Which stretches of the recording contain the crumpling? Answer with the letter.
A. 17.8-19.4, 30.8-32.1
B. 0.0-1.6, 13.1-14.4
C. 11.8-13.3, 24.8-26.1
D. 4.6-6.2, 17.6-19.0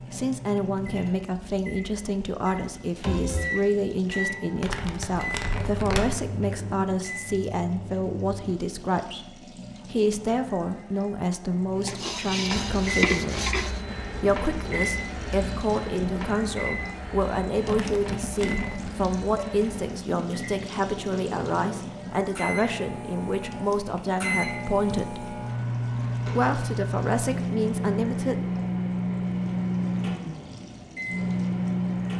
D.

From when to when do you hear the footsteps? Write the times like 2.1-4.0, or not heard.
not heard.